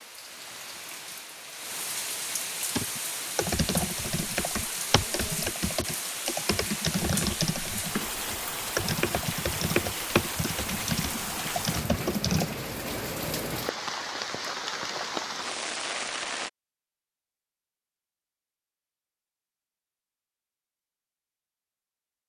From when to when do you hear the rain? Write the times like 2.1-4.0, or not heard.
0.0-16.5.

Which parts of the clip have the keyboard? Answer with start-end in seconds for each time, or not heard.
2.8-12.6.